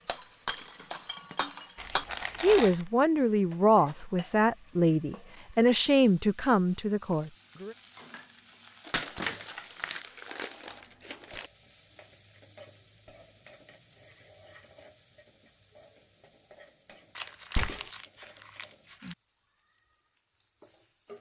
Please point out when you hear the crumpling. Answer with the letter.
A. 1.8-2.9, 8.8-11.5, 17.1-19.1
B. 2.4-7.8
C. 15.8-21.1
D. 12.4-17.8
A.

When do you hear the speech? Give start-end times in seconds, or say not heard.
2.4-7.8.